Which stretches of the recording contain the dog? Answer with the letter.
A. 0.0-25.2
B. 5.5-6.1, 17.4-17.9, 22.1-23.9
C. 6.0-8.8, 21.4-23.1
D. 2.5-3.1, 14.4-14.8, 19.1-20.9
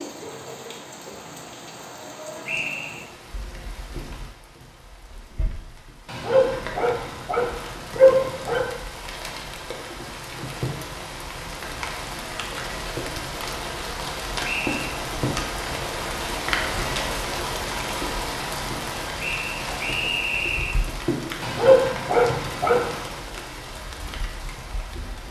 C.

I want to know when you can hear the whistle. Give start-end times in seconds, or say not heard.
2.5-3.1, 14.4-14.8, 19.1-20.9.